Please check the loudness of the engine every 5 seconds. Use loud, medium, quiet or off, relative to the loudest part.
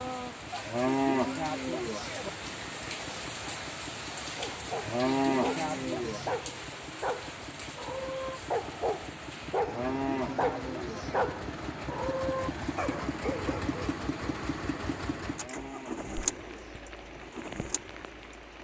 medium, medium, loud, loud.